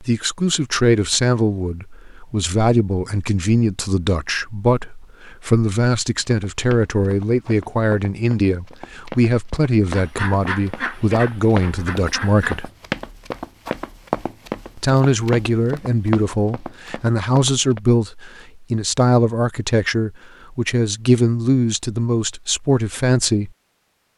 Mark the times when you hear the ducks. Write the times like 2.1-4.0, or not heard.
9.9-12.7.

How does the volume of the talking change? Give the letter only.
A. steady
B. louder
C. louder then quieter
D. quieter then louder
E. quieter
A.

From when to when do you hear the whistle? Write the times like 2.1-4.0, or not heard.
not heard.